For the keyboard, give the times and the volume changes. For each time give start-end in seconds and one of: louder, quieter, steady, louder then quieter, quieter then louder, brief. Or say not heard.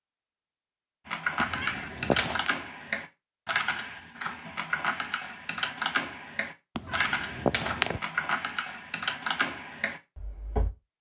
1.1-10.7 steady.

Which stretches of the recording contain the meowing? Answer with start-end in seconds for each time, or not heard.
1.4-2.5, 6.8-8.0.